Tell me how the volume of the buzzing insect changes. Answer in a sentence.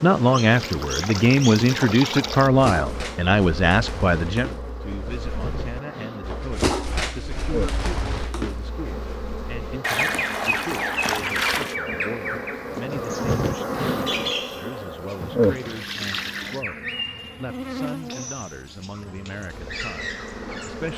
The volume of the buzzing insect goes up, then down.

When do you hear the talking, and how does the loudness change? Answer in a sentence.
The talking can be heard from 0.0 to 20.9 s, getting quieter.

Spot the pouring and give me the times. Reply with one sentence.
The pouring can be heard from 0.5 to 2.5 s, from 9.8 to 11.8 s and from 15.4 to 16.6 s.